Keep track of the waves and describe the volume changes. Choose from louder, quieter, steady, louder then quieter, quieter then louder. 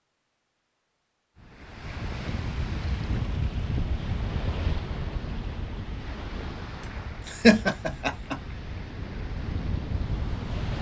quieter then louder.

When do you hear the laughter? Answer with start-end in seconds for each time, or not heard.
6.8-8.4.